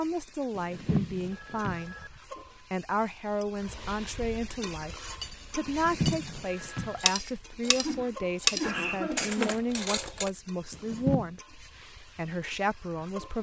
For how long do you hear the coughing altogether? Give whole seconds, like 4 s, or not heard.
2 s.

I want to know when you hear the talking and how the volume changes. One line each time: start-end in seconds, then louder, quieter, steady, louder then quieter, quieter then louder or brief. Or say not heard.
0.0-13.3 steady.